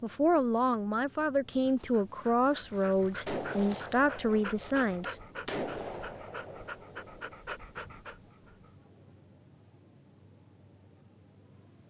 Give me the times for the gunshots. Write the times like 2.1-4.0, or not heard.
3.2-7.3.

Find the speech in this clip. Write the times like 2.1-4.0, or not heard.
0.0-5.2.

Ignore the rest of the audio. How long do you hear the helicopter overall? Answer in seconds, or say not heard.
not heard.